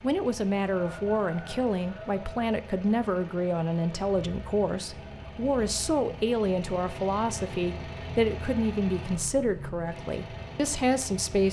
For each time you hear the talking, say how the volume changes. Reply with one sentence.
You can hear the talking from 0.0 to 11.4 s, at a steady volume.